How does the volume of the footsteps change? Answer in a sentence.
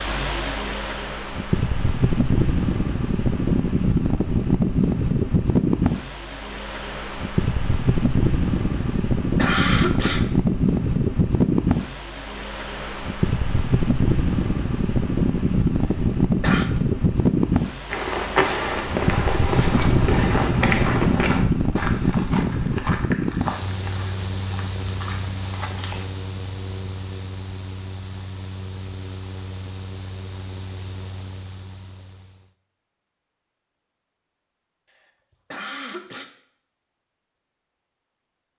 The loudness of the footsteps goes down.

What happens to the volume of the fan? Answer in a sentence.
The loudness of the fan goes down.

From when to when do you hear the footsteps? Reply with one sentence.
You can hear the footsteps from 17.9 to 26.1 s.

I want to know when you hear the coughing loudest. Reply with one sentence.
The loudest moment of the coughing is at 10 seconds.